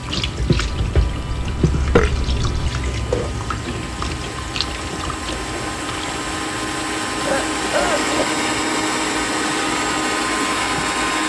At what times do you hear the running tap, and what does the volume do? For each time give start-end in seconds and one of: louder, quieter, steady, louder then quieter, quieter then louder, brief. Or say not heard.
0.0-11.2 quieter.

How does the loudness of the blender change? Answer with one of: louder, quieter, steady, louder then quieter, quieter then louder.
louder.